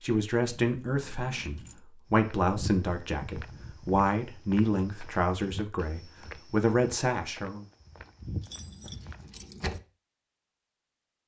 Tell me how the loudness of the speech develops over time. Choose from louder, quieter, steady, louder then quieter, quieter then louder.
steady.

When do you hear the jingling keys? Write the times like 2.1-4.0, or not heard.
0.6-1.9, 8.4-9.8.